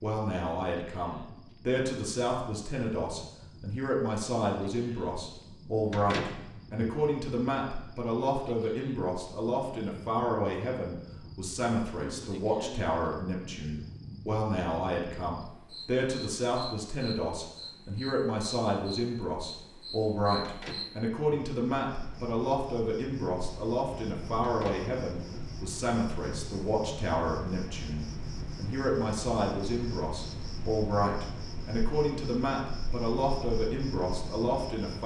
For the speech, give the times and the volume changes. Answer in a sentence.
You can hear the speech from 0.0 to 35.0 s, at a steady volume.